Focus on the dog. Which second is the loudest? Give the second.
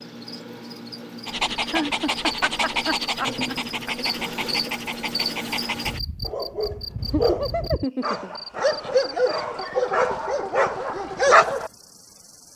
11 s.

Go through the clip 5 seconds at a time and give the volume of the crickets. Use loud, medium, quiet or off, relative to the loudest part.
loud, loud, medium.